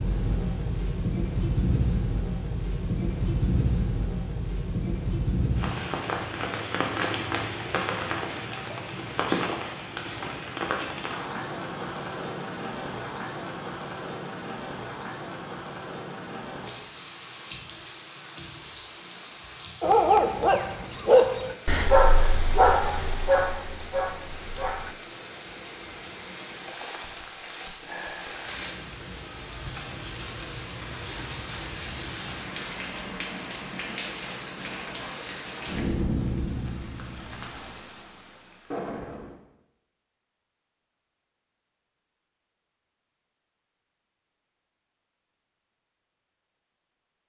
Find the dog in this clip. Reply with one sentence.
You can hear the dog from 19.8 to 24.9 s.